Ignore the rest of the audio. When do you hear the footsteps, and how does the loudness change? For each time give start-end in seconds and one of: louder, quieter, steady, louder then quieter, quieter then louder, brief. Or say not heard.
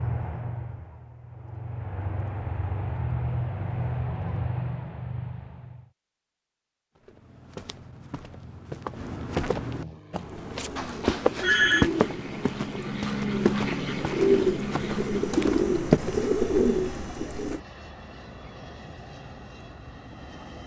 7.0-16.3 louder then quieter.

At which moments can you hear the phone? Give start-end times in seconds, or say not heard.
10.8-11.9.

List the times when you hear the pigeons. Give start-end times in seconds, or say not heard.
10.3-17.6.